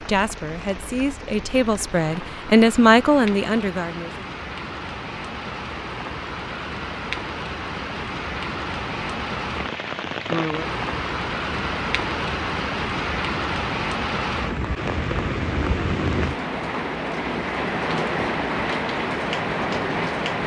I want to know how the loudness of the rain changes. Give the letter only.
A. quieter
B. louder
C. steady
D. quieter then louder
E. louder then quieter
B.